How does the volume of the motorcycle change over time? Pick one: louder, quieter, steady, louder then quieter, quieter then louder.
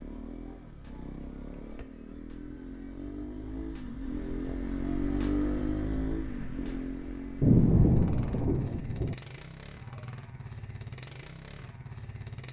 louder then quieter.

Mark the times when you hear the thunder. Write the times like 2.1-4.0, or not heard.
7.4-9.2.